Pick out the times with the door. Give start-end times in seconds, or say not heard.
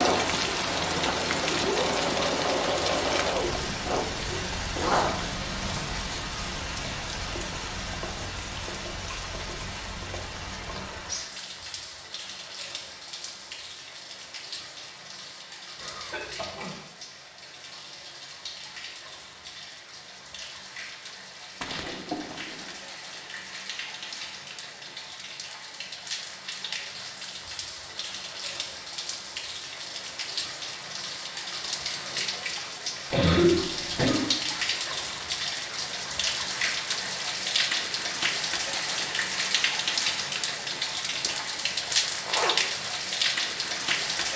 not heard.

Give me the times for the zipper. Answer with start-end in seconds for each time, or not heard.
4.8-5.9, 21.6-22.8, 41.0-42.5.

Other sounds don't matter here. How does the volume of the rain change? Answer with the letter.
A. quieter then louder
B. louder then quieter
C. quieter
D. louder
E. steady
A.